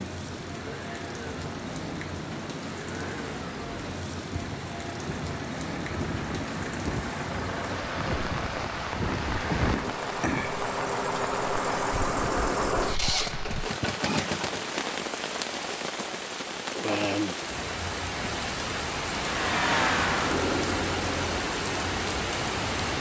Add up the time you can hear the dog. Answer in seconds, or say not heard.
not heard.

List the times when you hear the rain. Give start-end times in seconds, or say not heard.
0.0-22.9.